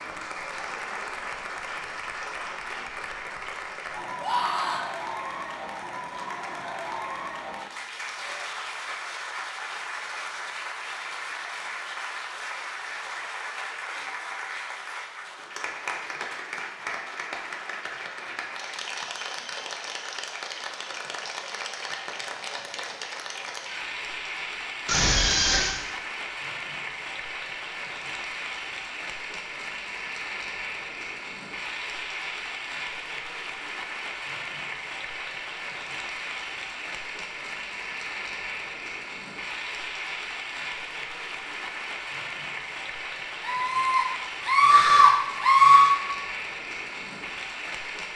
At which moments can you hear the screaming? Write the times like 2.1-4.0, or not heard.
4.2-4.8, 24.9-25.8, 43.5-46.0.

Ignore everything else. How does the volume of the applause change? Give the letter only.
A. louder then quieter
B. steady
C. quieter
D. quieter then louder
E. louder
B.